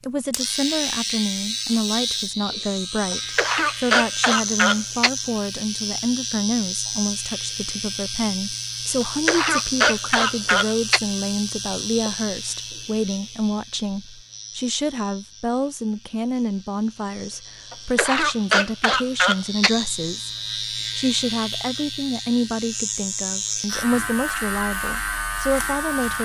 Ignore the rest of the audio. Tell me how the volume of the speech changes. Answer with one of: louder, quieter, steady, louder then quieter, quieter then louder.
steady.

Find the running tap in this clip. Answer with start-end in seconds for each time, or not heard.
not heard.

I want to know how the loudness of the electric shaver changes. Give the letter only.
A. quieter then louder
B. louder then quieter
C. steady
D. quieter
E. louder
A.